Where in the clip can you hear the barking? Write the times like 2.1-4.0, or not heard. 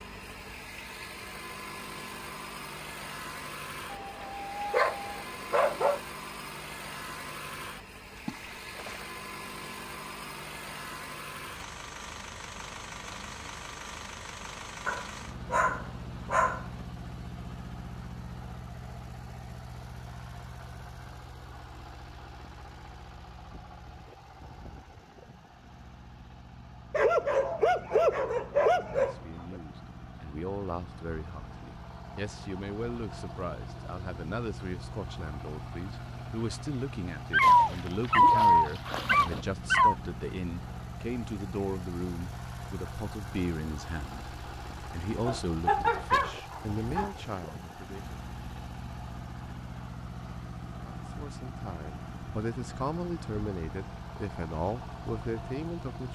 3.9-6.0, 14.8-16.6, 26.9-29.1, 37.3-40.0, 45.2-47.1.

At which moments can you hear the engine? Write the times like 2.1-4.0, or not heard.
0.0-56.1.